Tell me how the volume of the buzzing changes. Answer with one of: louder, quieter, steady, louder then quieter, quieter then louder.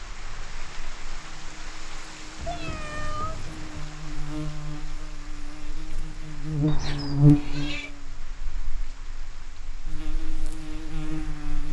louder then quieter.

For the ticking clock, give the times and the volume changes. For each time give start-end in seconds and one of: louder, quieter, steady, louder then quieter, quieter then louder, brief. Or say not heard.
not heard.